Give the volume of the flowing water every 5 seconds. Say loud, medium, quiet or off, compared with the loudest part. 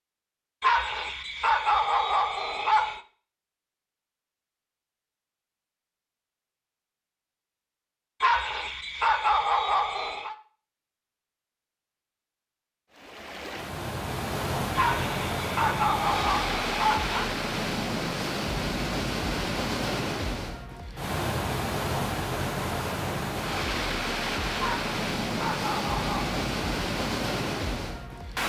off, off, loud, loud, loud, loud.